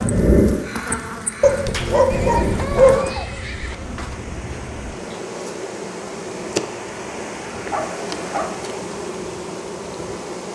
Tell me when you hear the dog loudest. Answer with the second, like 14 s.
3 s.